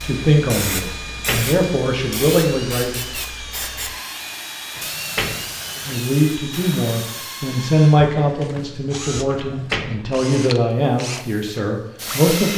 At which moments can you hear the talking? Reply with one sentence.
The talking can be heard from 0.0 to 3.1 s and from 5.8 to 12.5 s.